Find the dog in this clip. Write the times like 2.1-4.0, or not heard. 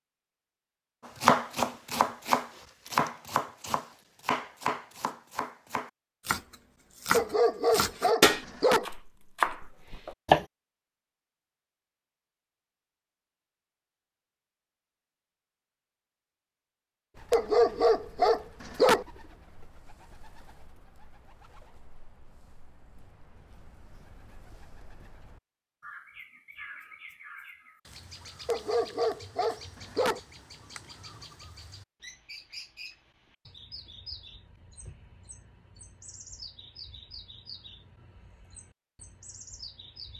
7.1-8.8, 17.3-19.1, 28.4-30.2.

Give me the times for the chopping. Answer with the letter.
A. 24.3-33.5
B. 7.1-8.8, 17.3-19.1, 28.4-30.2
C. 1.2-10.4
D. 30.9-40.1
C.